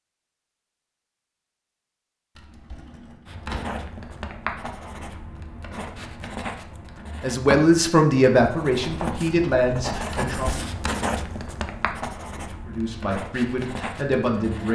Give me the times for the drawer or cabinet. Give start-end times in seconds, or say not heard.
2.4-3.8, 10.1-10.8.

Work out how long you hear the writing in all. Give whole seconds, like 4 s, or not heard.
11 s.